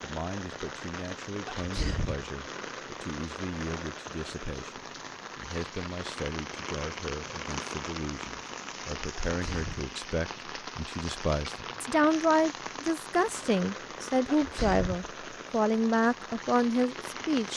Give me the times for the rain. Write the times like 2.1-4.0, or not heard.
0.0-17.5.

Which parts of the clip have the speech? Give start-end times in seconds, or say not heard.
0.0-17.5.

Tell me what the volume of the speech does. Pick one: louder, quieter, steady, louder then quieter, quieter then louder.
louder.